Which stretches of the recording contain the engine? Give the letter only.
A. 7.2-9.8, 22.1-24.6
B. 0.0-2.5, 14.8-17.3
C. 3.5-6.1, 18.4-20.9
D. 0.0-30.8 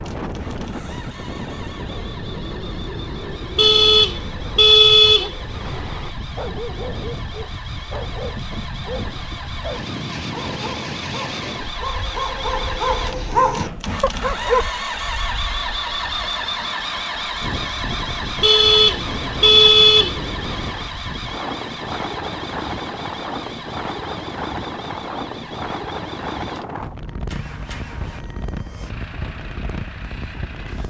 D.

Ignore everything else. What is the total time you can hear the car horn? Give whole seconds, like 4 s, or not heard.
5 s.